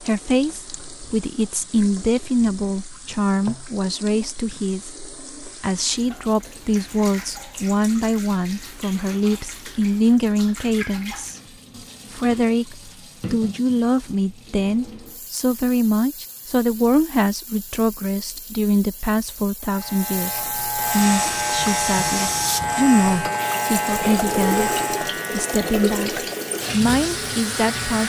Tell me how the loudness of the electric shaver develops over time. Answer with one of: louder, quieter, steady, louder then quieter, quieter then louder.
quieter.